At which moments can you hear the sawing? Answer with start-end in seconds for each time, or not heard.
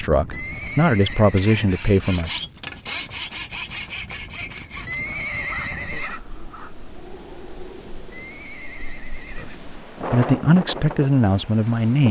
1.2-6.9.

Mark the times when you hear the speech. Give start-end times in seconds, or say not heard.
0.0-2.4, 9.4-12.0.